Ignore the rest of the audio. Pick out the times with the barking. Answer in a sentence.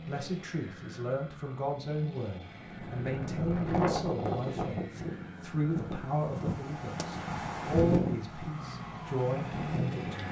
The barking can't be heard in this clip.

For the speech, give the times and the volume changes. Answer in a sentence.
You can hear the speech from 0.1 to 10.2 s, at a steady volume.